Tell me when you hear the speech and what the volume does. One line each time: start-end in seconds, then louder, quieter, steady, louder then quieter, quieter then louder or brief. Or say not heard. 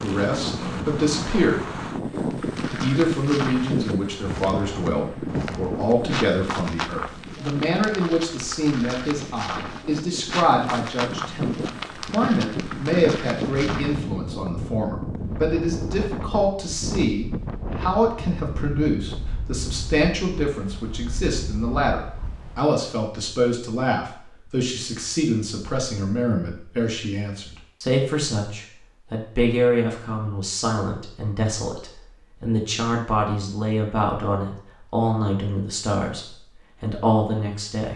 0.0-1.8 brief
2.8-37.9 steady.